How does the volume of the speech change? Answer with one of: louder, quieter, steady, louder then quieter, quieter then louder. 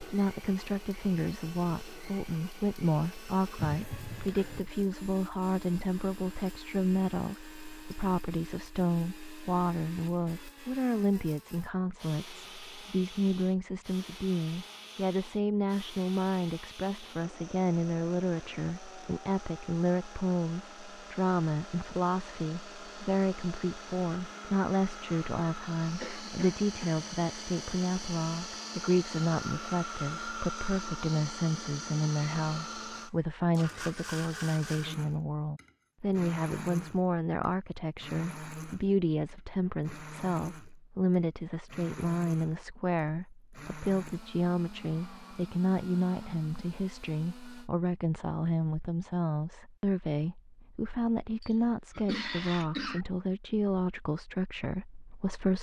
steady.